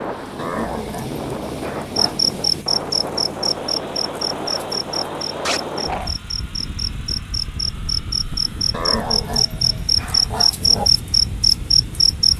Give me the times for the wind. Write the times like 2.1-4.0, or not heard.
0.0-12.3.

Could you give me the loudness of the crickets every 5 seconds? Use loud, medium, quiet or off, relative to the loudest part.
medium, medium, loud.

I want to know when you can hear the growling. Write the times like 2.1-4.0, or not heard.
0.3-2.5, 5.5-6.2, 8.7-10.9.